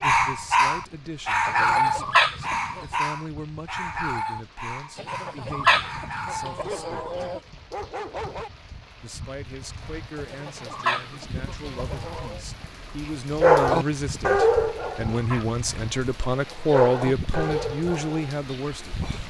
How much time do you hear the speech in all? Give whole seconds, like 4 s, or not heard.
17 s.